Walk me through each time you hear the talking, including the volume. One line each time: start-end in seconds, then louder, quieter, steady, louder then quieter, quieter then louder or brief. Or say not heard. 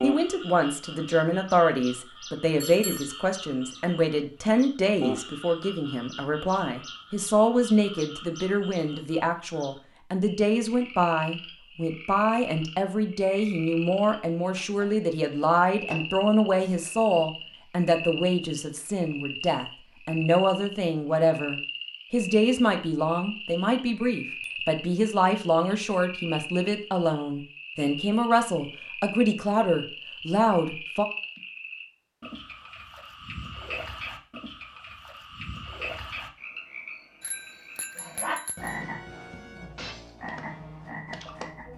0.0-31.1 steady.